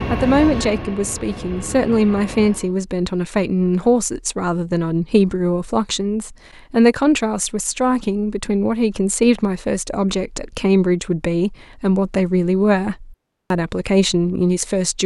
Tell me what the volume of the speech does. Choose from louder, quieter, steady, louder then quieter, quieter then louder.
steady.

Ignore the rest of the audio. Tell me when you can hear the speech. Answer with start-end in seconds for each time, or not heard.
0.1-15.0.